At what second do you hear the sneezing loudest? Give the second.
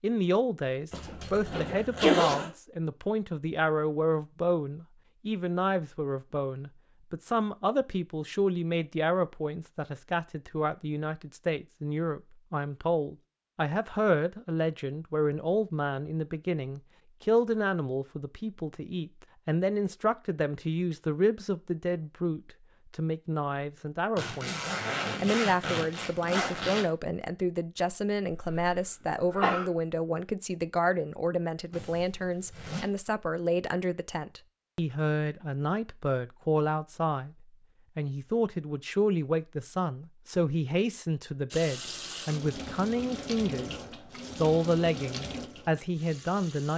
2 s.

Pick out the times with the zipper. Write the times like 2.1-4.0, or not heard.
0.9-2.5, 24.1-26.9, 31.7-32.9.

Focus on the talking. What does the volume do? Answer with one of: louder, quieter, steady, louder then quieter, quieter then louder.
steady.